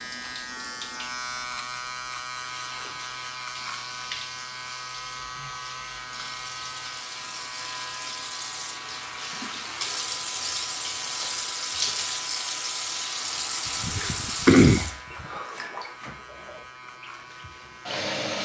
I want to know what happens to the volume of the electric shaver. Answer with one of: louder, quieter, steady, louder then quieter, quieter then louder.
quieter.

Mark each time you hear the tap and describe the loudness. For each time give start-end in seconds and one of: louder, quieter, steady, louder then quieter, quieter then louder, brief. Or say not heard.
0.0-18.4 louder then quieter.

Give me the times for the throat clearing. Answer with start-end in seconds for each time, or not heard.
13.8-15.2.